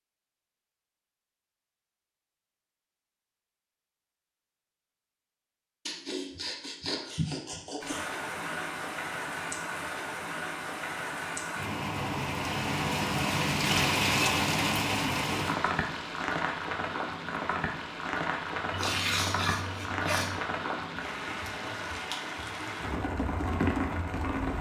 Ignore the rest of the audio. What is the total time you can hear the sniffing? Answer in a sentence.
The sniffing can be heard for 4 seconds in total.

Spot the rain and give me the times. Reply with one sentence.
You can hear the rain from 7.8 to 24.5 s.